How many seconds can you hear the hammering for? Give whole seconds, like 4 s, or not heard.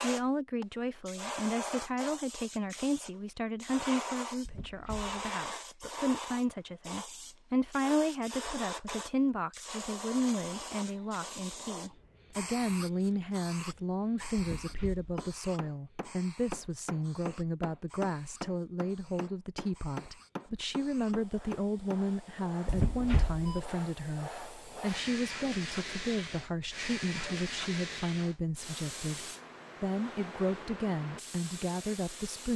7 s.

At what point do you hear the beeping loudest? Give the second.
23 s.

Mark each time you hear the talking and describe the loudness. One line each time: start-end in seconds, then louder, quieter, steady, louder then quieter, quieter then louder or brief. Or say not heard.
0.0-32.5 steady.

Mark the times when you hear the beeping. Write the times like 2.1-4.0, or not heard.
4.5-5.2, 14.3-15.1, 22.6-23.6.